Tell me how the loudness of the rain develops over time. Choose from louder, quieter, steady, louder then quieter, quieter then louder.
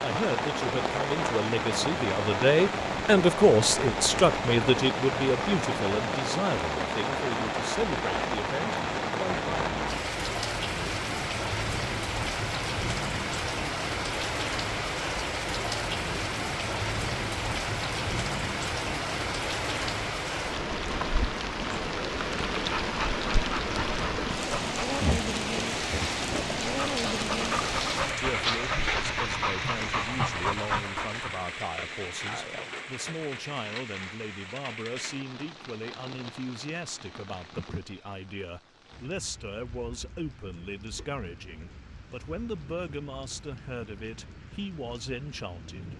quieter.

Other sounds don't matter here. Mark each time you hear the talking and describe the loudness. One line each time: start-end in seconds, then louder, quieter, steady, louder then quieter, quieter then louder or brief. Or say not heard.
0.0-9.7 louder then quieter
28.1-45.9 steady.